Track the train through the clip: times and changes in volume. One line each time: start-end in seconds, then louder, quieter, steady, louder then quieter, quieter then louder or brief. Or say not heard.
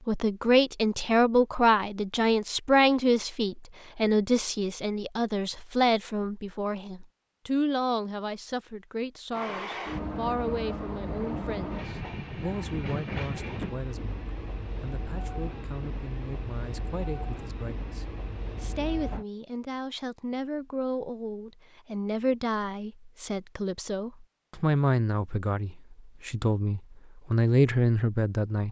9.3-19.2 quieter.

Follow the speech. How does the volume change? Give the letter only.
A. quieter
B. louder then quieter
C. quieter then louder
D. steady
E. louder
C.